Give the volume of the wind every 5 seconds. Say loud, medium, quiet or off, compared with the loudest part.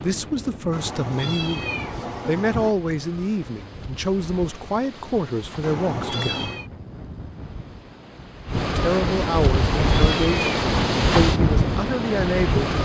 quiet, medium, loud.